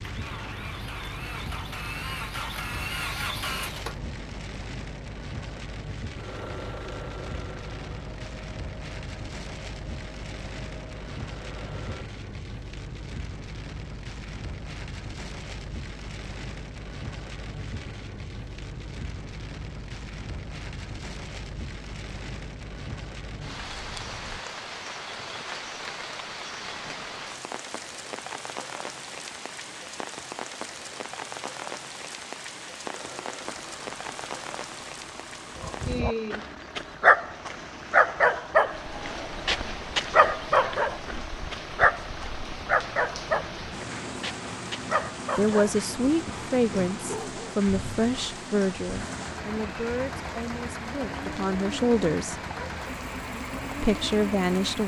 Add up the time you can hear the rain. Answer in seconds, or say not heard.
55 s.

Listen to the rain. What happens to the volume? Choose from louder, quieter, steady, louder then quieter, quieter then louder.
steady.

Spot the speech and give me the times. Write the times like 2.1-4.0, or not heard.
45.4-52.4, 53.8-54.8.